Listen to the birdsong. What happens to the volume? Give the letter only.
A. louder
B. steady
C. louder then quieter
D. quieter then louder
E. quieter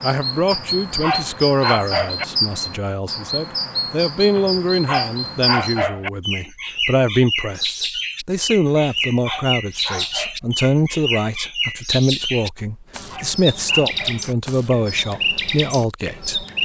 B.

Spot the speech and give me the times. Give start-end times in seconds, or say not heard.
0.0-16.5.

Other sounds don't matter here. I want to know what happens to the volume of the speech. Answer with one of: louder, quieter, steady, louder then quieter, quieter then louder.
steady.